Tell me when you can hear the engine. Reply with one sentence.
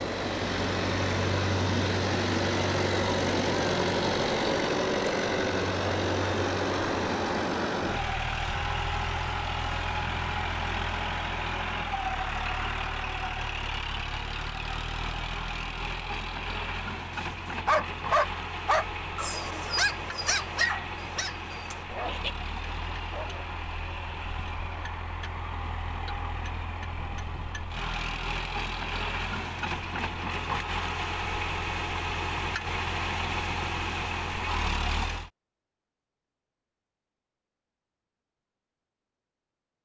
The engine can be heard from 0.0 to 35.3 s.